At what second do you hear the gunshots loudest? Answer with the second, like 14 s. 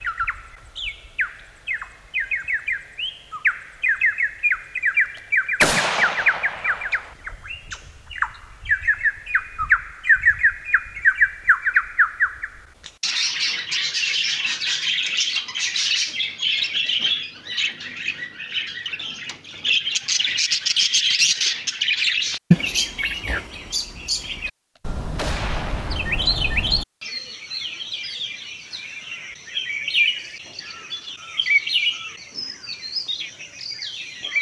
6 s.